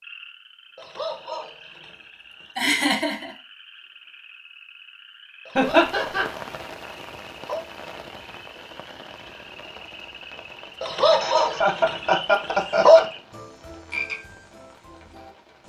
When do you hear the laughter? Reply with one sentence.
The laughter can be heard from 2.5 to 3.3 s, from 5.5 to 6.2 s and from 11.1 to 13.1 s.